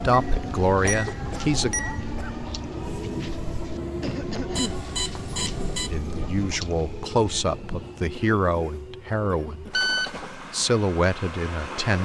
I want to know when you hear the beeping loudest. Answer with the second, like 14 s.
10 s.